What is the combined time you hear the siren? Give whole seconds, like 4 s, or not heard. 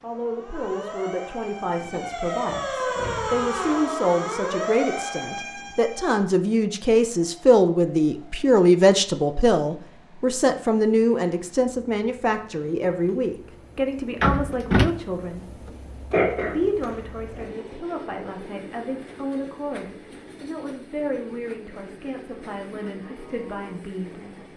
6 s.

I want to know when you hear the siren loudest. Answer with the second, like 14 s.
3 s.